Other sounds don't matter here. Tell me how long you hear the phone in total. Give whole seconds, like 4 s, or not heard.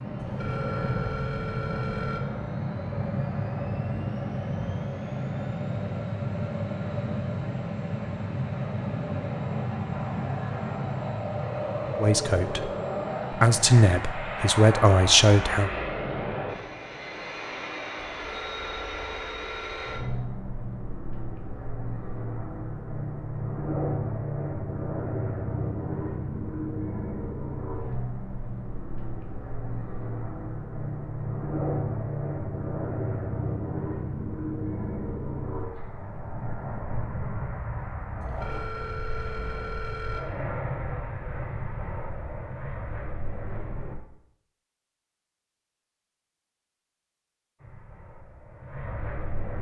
6 s.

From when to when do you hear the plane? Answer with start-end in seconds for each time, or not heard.
0.0-44.0, 47.5-49.5.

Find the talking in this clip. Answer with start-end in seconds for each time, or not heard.
12.0-12.7, 13.3-15.7.